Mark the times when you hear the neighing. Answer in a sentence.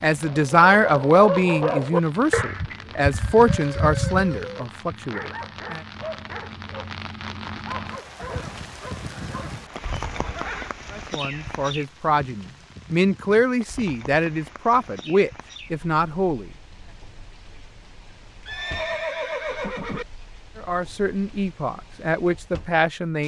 You can hear the neighing from 3.0 to 4.7 s, from 8.2 to 10.8 s and from 18.4 to 20.1 s.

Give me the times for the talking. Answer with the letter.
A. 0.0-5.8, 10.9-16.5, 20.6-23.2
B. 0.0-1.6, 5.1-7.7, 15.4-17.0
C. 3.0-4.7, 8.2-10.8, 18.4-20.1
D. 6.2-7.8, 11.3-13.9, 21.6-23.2
A.